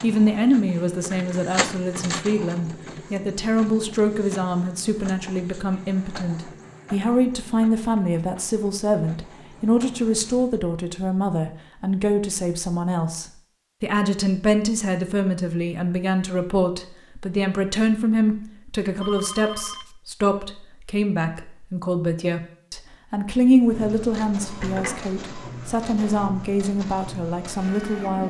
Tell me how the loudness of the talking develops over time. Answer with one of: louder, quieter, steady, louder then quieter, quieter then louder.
steady.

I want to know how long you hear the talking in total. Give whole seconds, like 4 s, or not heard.
28 s.